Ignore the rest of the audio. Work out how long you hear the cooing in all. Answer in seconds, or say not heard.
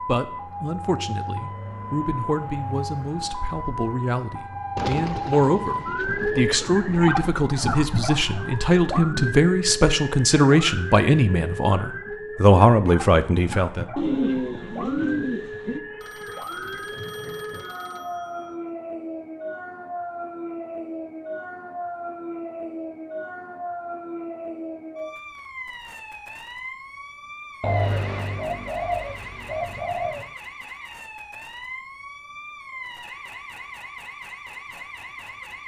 7 s.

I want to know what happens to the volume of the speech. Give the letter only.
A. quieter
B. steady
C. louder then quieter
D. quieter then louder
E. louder
E.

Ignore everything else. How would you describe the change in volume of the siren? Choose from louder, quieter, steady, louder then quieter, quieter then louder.
quieter.